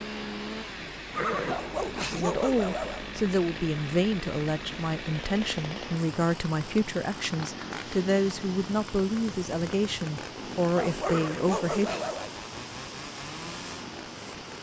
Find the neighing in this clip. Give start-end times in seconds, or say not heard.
1.1-2.2, 11.0-12.1.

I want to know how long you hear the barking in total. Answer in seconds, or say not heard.
3 s.